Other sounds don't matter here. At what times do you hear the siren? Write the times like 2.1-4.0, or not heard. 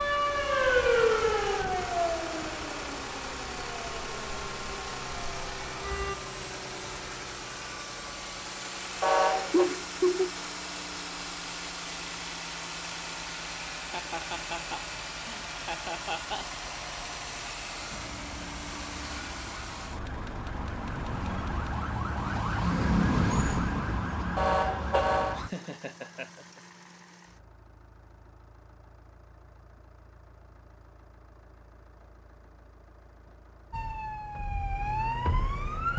0.0-6.2, 17.9-25.5, 33.7-35.9.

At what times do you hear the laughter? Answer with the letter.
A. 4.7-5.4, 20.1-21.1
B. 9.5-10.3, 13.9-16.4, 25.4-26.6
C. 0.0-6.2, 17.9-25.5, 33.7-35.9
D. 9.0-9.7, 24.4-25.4
B.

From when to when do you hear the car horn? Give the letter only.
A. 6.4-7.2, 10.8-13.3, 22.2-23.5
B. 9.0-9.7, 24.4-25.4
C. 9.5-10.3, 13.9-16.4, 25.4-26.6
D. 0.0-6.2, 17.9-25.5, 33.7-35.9
B.